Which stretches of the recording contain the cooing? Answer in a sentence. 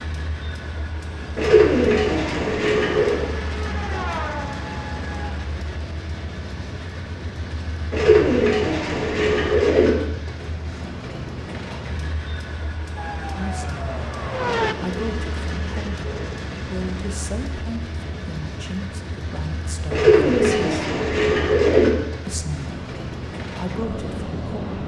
The cooing can be heard from 1.4 to 3.2 s, from 7.9 to 9.9 s, from 14.6 to 16.4 s and from 19.9 to 21.9 s.